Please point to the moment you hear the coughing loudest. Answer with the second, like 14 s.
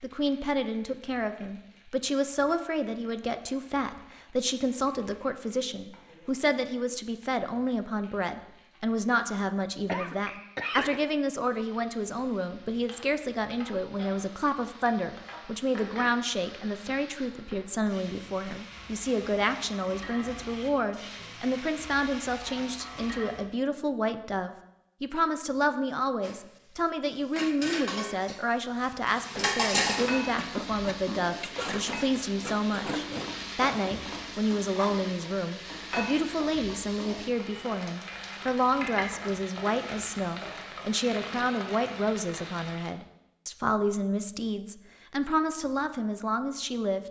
11 s.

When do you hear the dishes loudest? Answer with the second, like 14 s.
30 s.